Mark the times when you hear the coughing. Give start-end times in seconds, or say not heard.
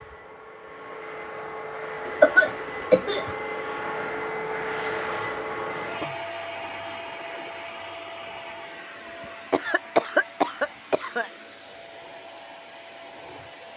2.0-3.4, 9.5-11.3.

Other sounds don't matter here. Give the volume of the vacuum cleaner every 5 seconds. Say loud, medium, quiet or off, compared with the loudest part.
loud, loud, medium.